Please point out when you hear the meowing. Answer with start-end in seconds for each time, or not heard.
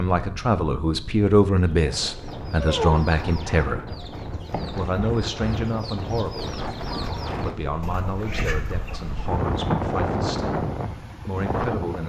2.6-3.0.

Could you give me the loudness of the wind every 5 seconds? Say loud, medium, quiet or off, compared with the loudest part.
medium, loud, loud.